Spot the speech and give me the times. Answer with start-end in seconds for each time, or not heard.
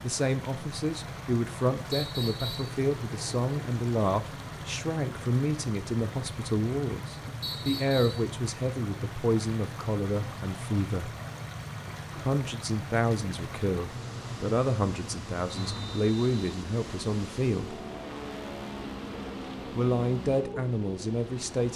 0.0-11.1, 12.2-17.8, 19.7-21.7.